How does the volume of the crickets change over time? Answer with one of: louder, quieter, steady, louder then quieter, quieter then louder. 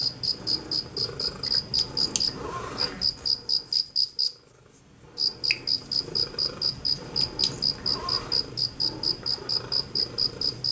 steady.